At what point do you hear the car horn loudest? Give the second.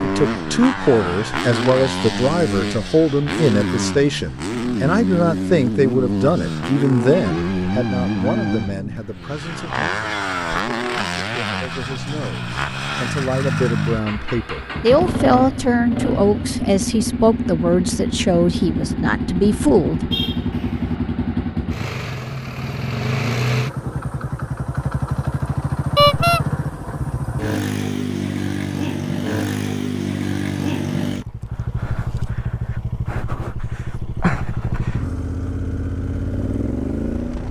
26 s.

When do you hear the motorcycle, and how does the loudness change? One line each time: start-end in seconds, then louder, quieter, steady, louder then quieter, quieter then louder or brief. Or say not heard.
0.0-37.4 steady.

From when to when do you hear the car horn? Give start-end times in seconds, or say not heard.
7.1-8.8, 20.1-20.9, 25.9-26.4.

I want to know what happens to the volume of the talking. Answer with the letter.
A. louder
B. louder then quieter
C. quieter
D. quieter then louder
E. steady
D.